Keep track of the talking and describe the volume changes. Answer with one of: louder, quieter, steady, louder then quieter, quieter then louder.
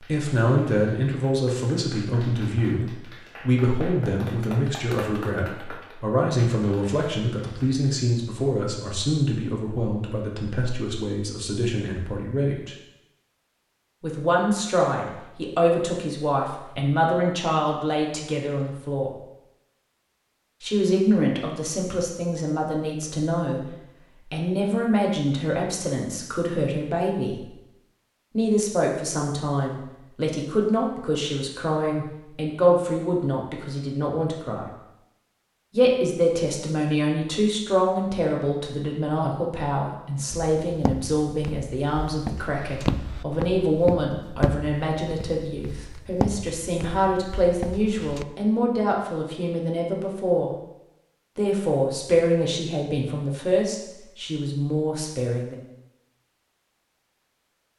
steady.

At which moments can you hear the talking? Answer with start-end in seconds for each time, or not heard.
0.0-12.8, 14.0-19.1, 20.6-27.5, 28.4-34.6, 35.7-50.5, 51.4-55.5.